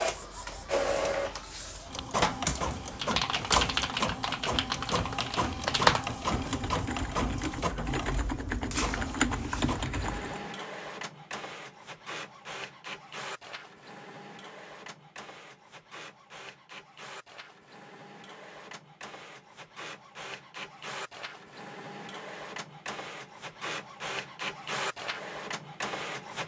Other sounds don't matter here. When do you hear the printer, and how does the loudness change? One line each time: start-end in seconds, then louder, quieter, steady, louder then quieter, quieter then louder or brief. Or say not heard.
0.0-26.4 quieter then louder.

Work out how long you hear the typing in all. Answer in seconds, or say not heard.
8 s.